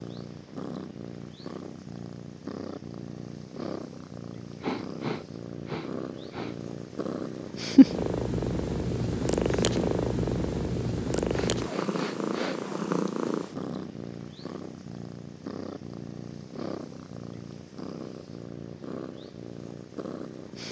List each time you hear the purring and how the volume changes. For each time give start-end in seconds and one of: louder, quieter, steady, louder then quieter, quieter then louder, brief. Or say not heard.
0.0-20.6 louder then quieter.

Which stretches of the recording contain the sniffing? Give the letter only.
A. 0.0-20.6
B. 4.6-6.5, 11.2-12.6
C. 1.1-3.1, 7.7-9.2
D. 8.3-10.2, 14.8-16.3
B.